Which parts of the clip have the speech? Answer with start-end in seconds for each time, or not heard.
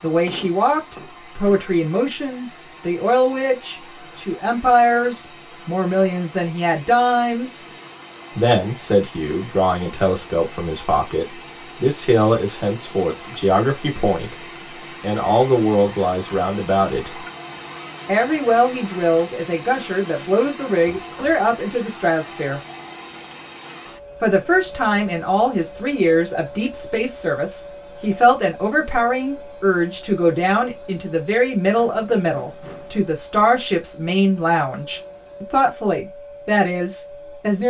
0.0-7.7, 8.3-17.2, 18.1-22.6, 24.2-37.6.